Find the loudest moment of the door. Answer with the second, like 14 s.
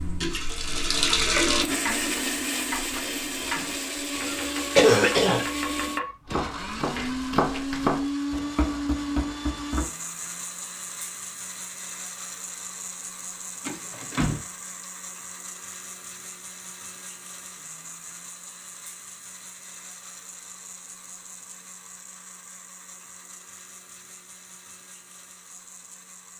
14 s.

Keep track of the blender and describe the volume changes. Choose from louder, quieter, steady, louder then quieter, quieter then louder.
quieter.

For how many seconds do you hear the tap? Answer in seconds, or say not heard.
2 s.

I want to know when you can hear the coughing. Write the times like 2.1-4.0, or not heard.
4.8-5.5.